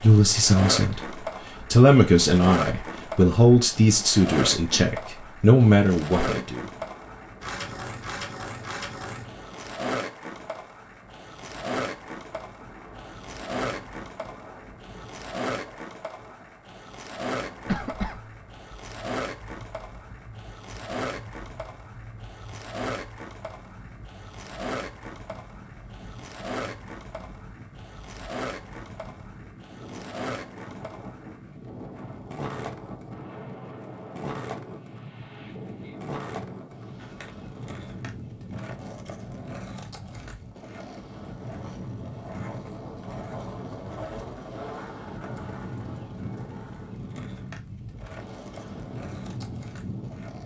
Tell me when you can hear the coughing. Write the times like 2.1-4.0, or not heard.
17.6-18.2.